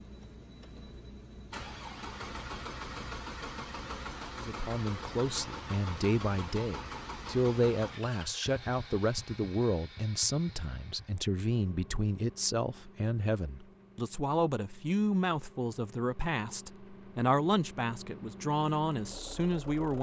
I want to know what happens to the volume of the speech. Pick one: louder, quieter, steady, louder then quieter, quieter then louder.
steady.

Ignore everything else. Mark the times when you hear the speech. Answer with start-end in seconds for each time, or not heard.
4.3-19.9.